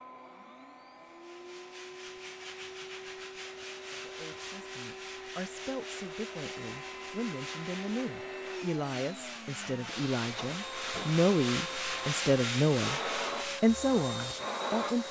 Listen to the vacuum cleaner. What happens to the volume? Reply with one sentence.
The volume of the vacuum cleaner goes up.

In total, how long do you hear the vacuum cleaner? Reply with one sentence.
The vacuum cleaner can be heard for 15 seconds in total.